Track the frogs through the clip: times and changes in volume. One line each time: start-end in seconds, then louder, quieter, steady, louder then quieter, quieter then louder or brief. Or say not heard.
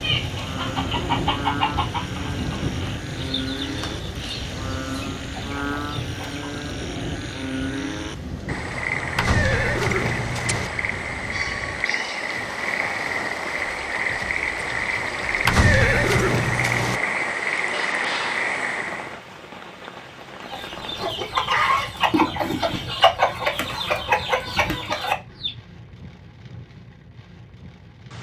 0.0-19.2 louder.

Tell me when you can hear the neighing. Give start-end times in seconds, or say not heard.
9.2-10.7, 15.4-17.0.